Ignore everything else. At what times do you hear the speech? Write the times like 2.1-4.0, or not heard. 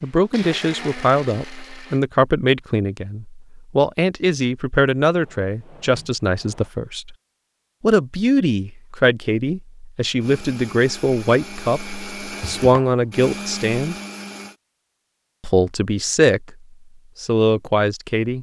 0.0-7.2, 7.8-13.9, 15.4-16.6, 17.2-18.3.